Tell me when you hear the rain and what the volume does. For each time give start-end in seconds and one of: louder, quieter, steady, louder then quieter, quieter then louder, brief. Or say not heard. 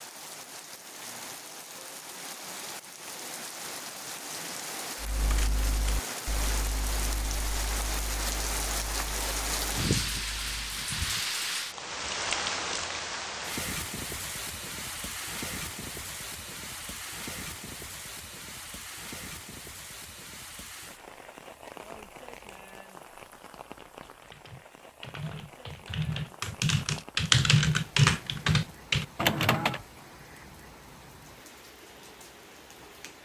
0.0-33.2 louder then quieter.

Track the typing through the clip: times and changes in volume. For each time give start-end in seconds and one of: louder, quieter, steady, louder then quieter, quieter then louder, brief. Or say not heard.
5.0-10.7 quieter
24.0-29.8 louder.